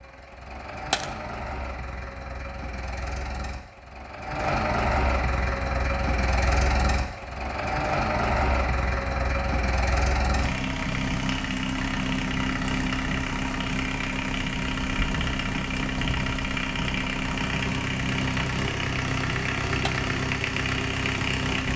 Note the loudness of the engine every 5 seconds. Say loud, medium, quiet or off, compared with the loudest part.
medium, loud, loud, loud, loud.